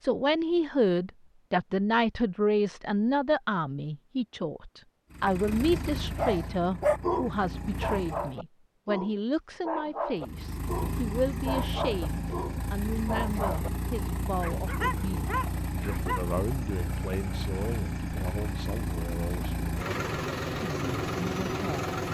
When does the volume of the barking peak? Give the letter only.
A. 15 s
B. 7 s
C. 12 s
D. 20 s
B.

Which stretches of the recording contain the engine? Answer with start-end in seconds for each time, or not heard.
5.1-8.4, 10.2-22.1.